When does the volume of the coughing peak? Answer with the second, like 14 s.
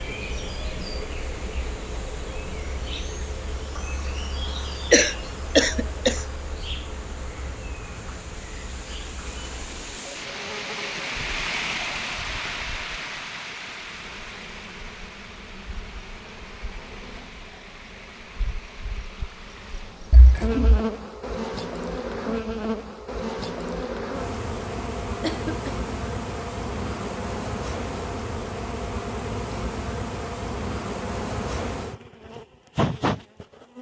5 s.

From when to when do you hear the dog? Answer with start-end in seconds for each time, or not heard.
not heard.